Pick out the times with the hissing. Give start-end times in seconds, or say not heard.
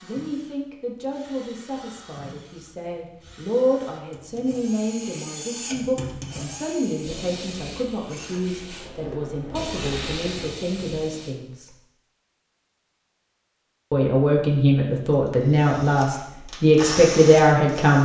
7.0-11.3.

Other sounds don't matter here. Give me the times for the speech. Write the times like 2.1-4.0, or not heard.
0.0-11.7, 13.9-17.9.